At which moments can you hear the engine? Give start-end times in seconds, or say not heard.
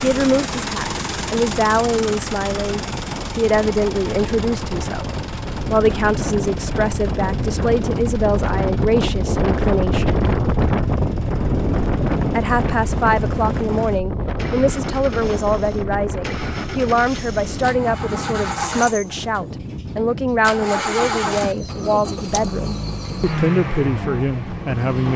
0.0-25.1.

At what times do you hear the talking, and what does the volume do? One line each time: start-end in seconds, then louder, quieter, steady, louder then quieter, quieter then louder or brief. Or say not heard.
0.0-10.2 steady
12.3-25.1 steady.